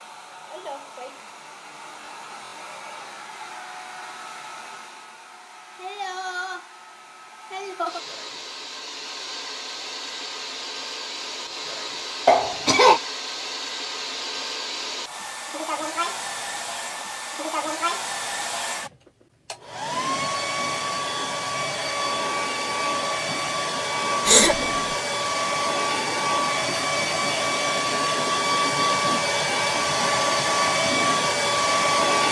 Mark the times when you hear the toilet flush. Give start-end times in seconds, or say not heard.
not heard.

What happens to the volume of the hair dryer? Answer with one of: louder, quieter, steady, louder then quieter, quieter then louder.
louder.